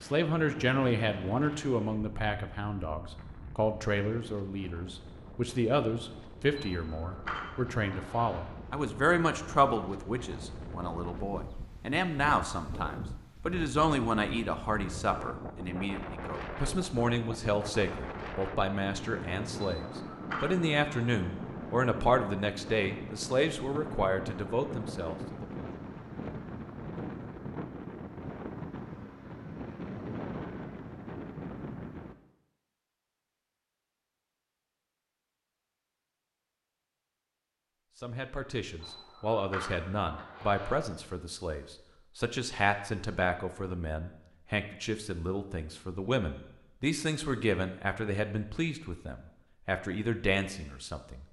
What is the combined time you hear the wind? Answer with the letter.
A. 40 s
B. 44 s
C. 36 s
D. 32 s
D.